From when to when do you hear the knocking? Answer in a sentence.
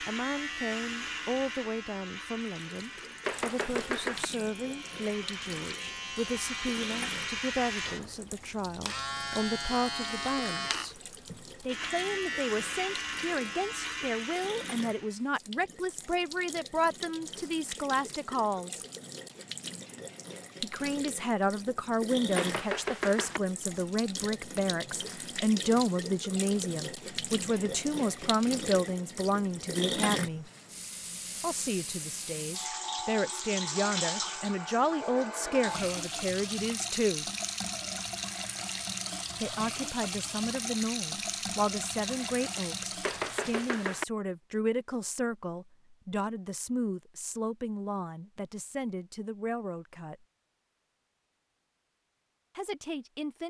The knocking can be heard from 3.2 to 4.3 s, from 22.4 to 23.4 s and from 43.0 to 44.0 s.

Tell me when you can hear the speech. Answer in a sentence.
You can hear the speech from 0.0 to 10.9 s, from 11.7 to 18.8 s, from 20.6 to 30.4 s, from 31.4 to 37.2 s, from 39.4 to 50.2 s and from 52.5 to 53.4 s.